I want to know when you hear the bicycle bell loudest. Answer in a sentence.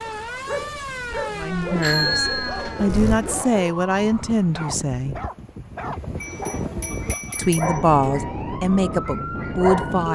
The loudest moment of the bicycle bell is at 2 seconds.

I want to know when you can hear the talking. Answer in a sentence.
The talking can be heard from 1.3 to 5.2 s and from 7.3 to 10.1 s.